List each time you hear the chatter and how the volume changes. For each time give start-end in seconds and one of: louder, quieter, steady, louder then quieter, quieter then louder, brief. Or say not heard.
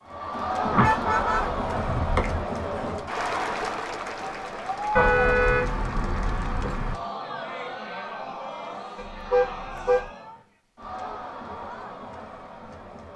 0.0-13.1 quieter.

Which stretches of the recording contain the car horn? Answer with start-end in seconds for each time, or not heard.
0.6-2.5, 5.0-7.0, 8.9-10.1.